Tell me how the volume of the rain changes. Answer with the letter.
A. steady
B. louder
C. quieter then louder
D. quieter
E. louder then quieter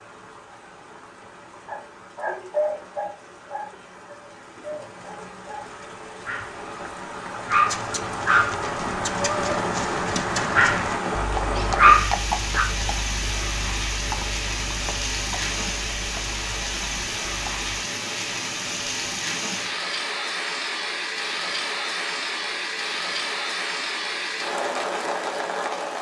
B.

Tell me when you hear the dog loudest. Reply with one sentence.
The loudest moment of the dog is at 12 seconds.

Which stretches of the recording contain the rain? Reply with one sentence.
The rain can be heard from 0.0 to 25.9 s.